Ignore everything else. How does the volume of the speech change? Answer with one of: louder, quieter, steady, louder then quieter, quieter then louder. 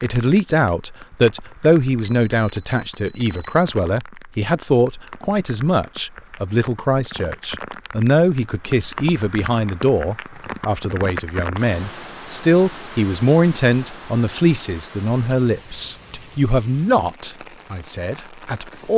steady.